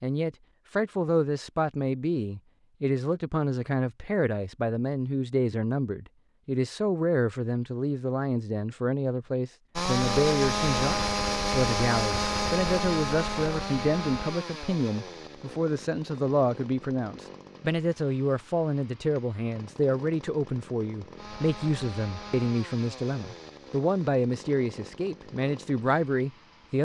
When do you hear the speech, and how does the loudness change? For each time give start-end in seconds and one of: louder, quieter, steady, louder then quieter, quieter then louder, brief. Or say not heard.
0.0-26.7 steady.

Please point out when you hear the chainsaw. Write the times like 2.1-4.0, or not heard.
9.8-26.7.